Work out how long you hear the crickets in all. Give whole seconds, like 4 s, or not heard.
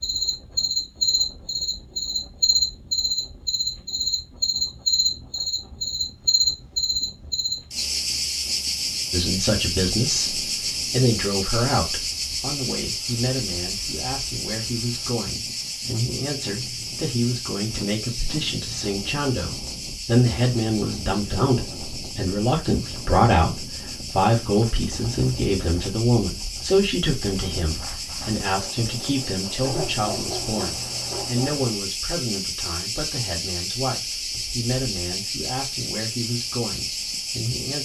38 s.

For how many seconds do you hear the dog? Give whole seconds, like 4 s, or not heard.
2 s.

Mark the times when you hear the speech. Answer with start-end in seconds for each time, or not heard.
9.1-37.8.